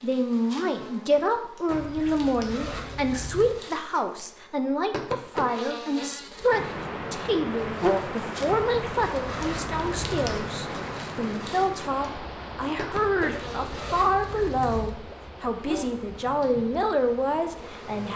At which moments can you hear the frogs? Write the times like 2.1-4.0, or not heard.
not heard.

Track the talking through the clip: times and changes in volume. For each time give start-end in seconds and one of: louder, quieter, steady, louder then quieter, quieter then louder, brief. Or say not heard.
0.0-18.1 steady.